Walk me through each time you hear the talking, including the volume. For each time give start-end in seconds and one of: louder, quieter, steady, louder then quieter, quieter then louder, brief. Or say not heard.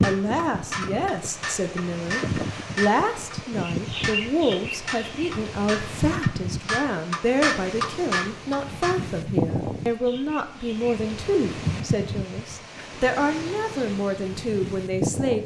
0.0-15.4 steady.